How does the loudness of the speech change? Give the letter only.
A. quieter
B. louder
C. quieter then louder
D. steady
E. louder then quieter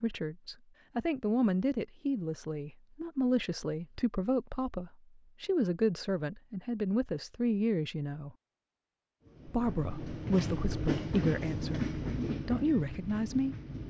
D.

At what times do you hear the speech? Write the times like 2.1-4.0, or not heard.
0.0-8.3, 9.4-13.6.